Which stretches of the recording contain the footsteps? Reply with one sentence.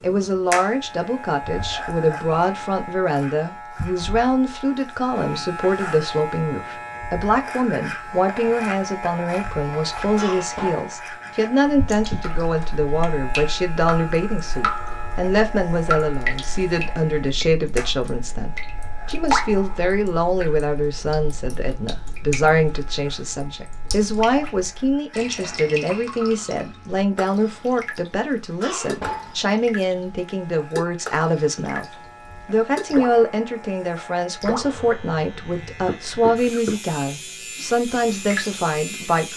The footsteps can't be heard in this clip.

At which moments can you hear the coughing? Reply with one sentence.
The coughing can be heard from 10.2 to 11.0 s and from 28.6 to 29.6 s.